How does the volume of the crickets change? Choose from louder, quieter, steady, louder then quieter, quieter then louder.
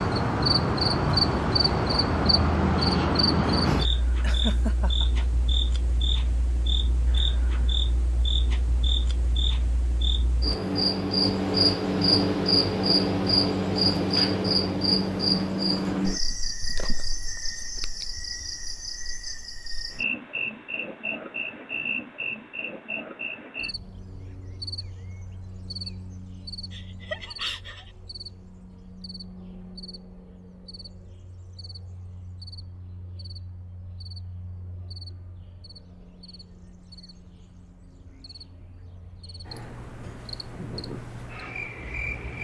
quieter.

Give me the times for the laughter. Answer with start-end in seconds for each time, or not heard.
4.2-5.2, 26.7-27.9.